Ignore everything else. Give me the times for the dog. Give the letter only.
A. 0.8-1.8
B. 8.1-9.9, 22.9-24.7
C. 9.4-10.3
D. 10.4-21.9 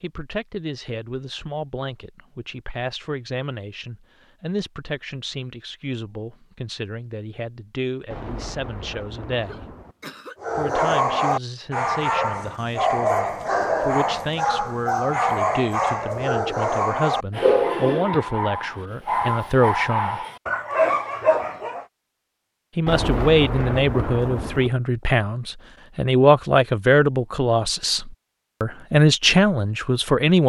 D.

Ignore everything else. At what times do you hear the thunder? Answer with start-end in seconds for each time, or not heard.
8.1-9.9, 22.9-24.7.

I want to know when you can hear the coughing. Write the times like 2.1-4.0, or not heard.
9.4-10.3.